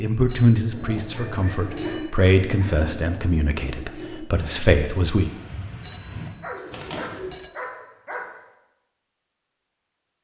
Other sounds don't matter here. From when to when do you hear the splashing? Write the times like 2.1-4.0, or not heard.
not heard.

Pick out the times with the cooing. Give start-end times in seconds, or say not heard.
0.7-7.3.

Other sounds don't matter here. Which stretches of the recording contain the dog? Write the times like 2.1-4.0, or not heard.
1.1-2.8, 6.4-8.4.